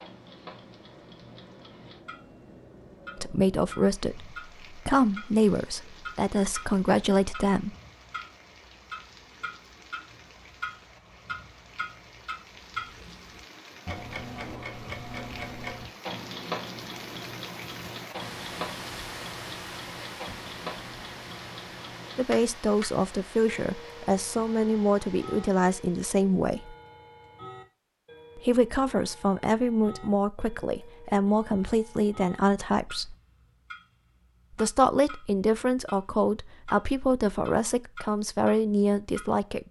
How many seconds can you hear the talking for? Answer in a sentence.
You can hear the talking for 19 seconds altogether.